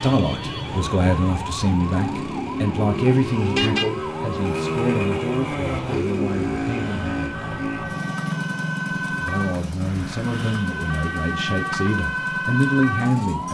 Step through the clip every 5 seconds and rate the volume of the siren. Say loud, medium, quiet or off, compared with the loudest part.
medium, medium, loud.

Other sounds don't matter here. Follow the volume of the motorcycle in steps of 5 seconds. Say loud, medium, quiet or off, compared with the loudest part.
loud, loud, medium.